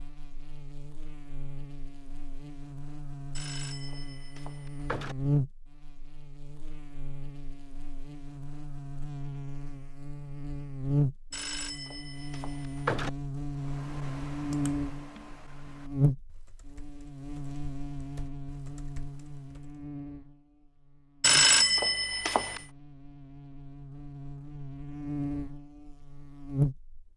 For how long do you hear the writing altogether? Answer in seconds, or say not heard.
not heard.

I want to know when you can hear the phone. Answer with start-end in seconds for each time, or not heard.
3.4-5.2, 11.3-13.1, 21.2-22.6.